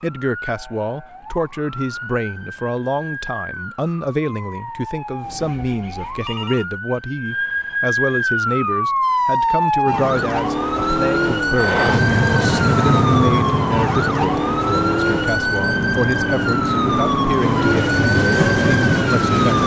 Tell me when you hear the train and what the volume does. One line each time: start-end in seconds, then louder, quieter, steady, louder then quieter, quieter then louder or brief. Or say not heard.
11.5-19.6 quieter then louder.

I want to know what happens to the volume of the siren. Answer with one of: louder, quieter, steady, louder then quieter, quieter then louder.
louder.